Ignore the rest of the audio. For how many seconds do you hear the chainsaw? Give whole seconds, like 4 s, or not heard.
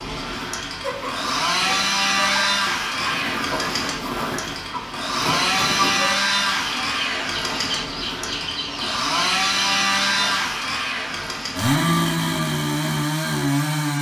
14 s.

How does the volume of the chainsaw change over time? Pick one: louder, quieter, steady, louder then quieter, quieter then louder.
steady.